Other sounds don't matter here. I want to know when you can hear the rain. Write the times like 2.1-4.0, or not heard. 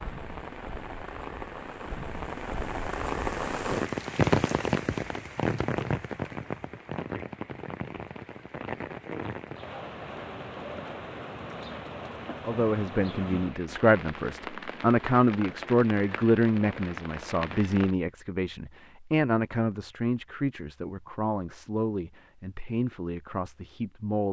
0.0-17.9.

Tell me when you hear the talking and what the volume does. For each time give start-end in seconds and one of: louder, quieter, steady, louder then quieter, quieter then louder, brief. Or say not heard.
12.4-24.2 quieter.